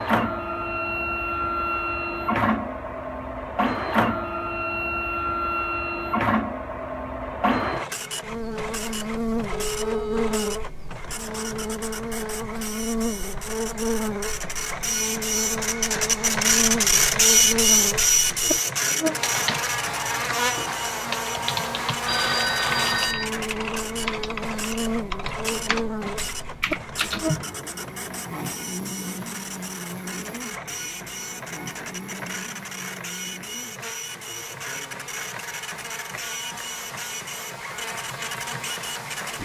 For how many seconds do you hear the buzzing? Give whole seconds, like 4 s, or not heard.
31 s.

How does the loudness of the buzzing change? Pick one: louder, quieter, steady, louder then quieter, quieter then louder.
quieter.